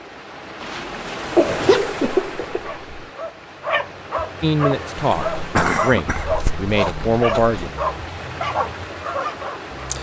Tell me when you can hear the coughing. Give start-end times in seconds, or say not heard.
1.4-3.0, 5.3-7.0.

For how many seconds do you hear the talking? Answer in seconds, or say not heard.
3 s.